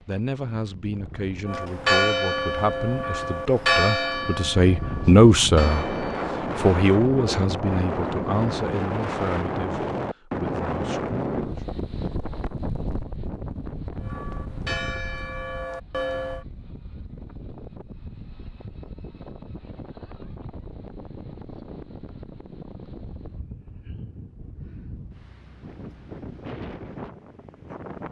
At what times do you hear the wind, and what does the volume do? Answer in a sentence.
You can hear the wind from 0.0 to 28.0 s, getting louder then quieter.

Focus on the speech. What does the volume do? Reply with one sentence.
The volume of the speech goes up, then down.